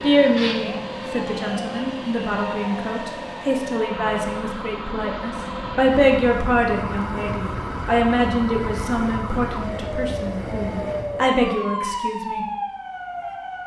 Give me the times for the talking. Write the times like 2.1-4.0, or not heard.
0.0-12.4.